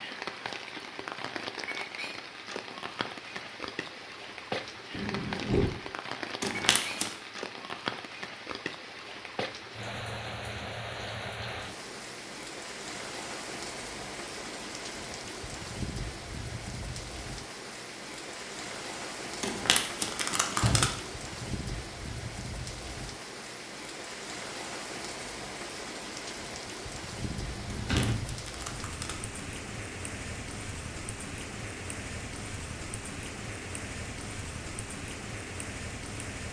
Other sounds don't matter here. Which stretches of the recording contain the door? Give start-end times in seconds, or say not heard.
4.9-5.7, 20.5-21.4, 27.4-28.4.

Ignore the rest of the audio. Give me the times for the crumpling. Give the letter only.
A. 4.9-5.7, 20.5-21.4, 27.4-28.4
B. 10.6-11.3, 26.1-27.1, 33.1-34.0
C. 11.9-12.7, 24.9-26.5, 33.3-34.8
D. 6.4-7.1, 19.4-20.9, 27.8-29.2
D.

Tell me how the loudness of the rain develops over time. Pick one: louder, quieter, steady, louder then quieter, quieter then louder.
steady.